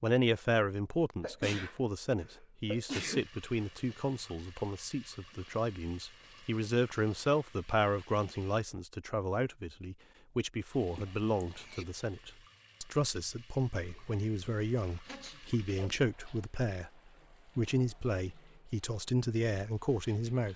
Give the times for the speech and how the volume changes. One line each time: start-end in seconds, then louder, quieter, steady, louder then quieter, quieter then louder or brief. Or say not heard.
0.0-16.9 steady
17.6-20.5 brief.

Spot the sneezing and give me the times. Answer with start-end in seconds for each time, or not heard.
1.2-3.2, 10.9-11.8, 15.0-15.5.